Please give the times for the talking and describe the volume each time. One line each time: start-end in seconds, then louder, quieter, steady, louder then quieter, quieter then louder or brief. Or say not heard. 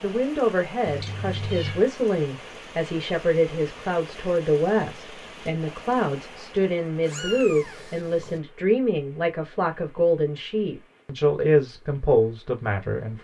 0.0-13.1 steady.